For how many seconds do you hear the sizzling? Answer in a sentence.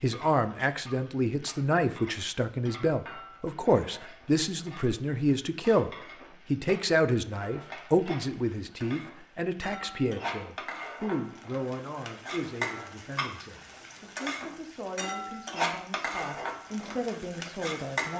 The sizzling can be heard for 18 seconds in total.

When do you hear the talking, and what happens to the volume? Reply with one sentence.
The talking can be heard from 0.0 to 18.1 s, getting quieter.